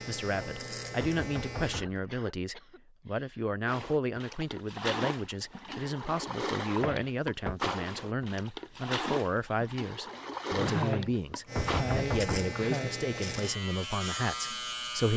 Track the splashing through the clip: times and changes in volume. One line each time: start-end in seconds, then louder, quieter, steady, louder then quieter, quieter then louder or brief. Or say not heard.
3.6-11.8 steady.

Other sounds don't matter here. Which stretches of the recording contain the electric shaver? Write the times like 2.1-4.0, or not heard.
0.0-1.9, 11.4-15.1.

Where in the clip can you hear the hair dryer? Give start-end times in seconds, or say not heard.
not heard.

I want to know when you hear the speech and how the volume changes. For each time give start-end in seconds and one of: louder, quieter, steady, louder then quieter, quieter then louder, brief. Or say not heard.
0.1-15.1 steady.